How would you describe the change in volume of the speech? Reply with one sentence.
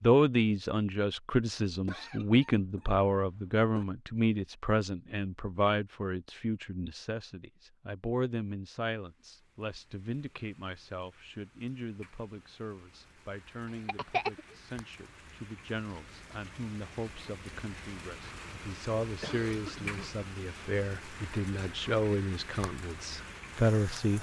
The volume of the speech goes down, then up.